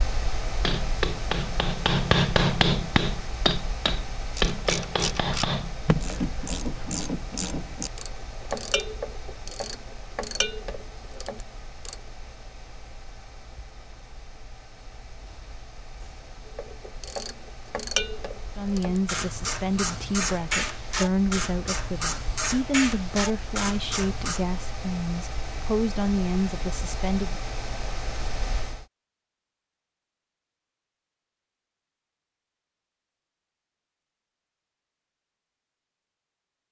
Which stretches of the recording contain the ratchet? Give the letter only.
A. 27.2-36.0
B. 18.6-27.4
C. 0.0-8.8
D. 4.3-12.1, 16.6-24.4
D.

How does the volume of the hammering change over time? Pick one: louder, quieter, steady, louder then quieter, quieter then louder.
louder then quieter.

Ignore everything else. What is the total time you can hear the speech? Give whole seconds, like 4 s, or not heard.
9 s.